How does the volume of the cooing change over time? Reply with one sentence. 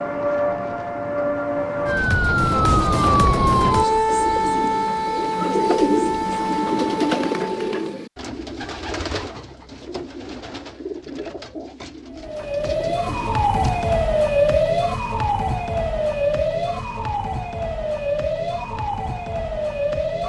The volume of the cooing goes up, then down.